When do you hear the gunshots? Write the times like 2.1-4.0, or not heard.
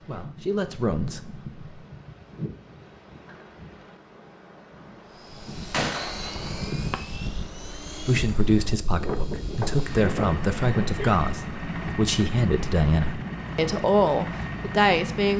5.7-6.8.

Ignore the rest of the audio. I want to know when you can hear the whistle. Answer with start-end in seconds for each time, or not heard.
not heard.